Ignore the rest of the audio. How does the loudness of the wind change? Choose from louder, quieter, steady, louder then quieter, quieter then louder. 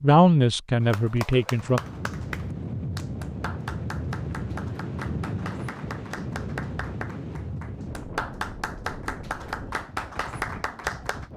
quieter.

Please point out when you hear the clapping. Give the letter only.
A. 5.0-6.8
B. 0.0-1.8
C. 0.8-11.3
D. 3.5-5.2
C.